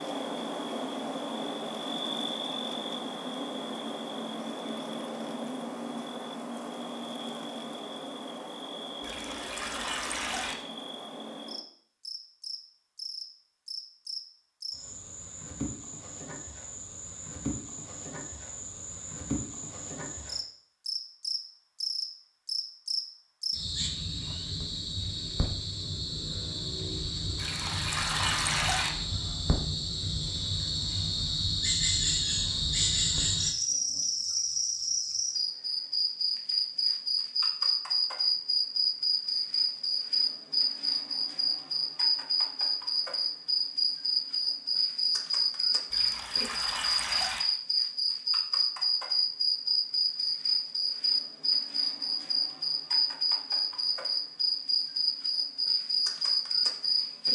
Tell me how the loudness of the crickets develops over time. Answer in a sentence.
The volume of the crickets goes up.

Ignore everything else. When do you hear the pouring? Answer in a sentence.
You can hear the pouring from 9.0 to 10.6 s, from 27.4 to 28.9 s and from 45.9 to 47.5 s.